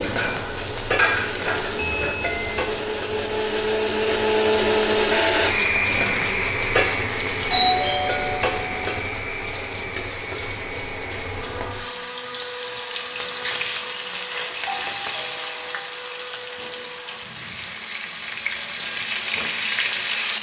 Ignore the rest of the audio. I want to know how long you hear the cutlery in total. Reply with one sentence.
You can hear the cutlery for 2 seconds altogether.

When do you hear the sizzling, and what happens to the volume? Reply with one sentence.
You can hear the sizzling from 0.0 to 20.3 s, at a steady volume.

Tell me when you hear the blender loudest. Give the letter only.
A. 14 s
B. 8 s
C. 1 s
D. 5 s
D.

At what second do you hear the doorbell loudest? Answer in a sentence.
The volume of the doorbell peaks at 8 seconds.